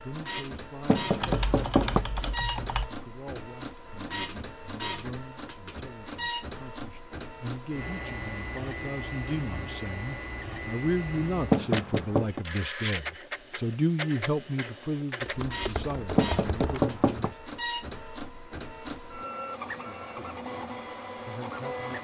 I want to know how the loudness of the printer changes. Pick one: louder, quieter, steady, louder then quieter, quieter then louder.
steady.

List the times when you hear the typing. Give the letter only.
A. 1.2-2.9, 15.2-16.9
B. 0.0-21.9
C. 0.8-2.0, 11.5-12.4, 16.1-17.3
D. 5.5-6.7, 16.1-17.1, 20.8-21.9
A.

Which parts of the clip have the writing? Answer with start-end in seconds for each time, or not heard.
not heard.